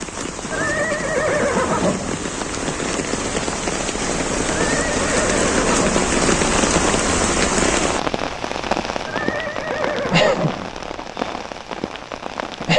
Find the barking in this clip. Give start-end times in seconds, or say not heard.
not heard.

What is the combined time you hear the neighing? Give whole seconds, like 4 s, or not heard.
5 s.